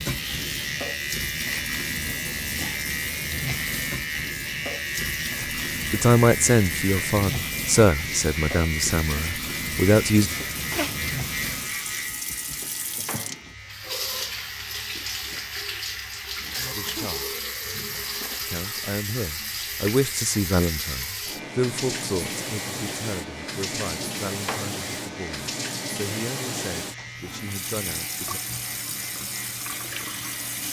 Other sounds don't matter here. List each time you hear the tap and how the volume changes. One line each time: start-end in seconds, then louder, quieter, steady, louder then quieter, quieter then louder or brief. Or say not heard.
0.0-30.6 steady.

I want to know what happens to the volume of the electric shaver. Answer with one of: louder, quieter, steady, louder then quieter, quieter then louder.
quieter.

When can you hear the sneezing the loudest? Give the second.
11 s.